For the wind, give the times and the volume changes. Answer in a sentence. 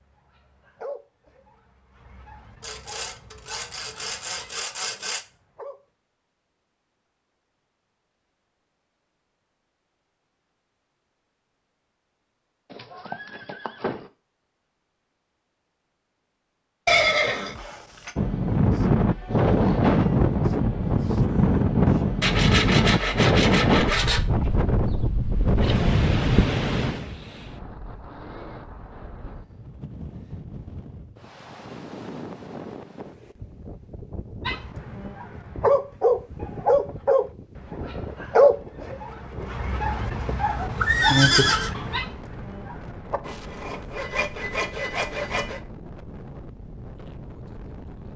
The wind can be heard from 18.1 to 48.1 s, getting quieter.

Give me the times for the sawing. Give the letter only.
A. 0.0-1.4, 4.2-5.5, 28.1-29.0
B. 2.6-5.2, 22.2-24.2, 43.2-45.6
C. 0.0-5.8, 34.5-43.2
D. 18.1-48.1
B.